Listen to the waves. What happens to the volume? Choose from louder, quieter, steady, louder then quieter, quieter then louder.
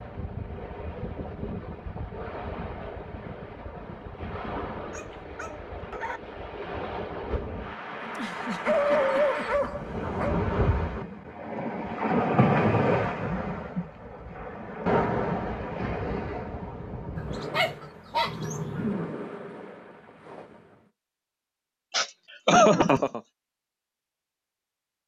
louder then quieter.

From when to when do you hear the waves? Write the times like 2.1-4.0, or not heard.
0.0-20.9.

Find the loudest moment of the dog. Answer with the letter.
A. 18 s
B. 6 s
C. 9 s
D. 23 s
C.